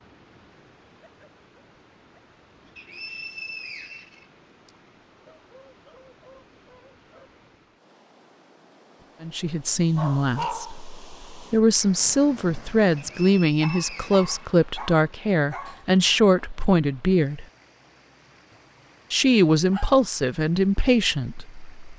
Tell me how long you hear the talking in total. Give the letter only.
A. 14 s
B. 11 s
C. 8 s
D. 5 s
B.